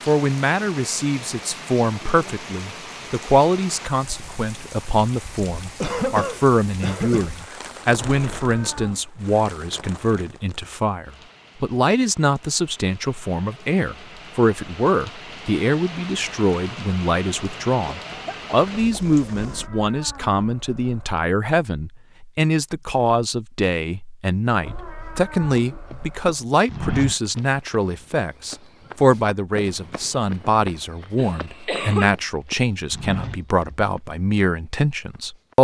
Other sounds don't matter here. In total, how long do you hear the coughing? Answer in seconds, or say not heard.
4 s.